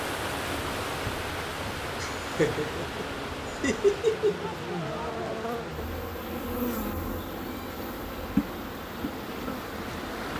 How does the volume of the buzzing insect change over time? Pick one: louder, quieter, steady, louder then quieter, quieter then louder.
louder.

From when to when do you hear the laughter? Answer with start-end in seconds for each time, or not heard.
2.0-4.5.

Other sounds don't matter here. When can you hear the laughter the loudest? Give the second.
4 s.